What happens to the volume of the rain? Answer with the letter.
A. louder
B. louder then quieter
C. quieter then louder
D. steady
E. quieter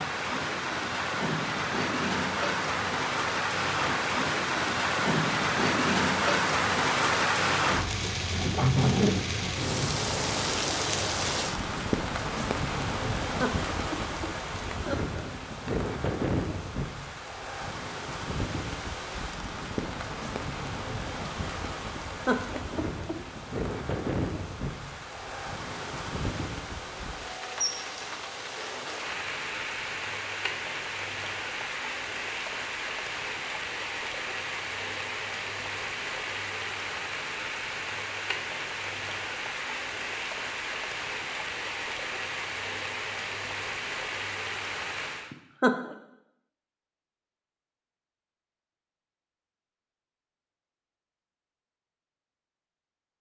E.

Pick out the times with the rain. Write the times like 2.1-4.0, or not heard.
0.0-45.4.